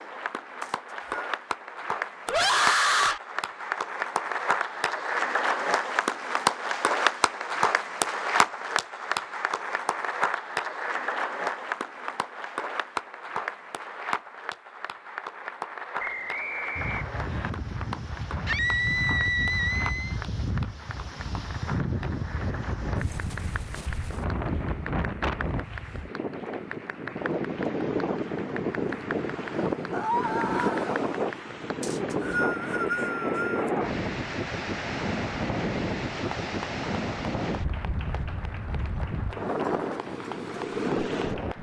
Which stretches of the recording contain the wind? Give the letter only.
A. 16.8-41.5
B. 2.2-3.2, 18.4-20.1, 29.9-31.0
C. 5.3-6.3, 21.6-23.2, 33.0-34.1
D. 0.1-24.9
A.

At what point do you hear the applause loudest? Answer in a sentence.
The volume of the applause peaks at 7 seconds.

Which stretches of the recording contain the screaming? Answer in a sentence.
The screaming can be heard from 2.2 to 3.2 s, from 18.4 to 20.1 s and from 29.9 to 31.0 s.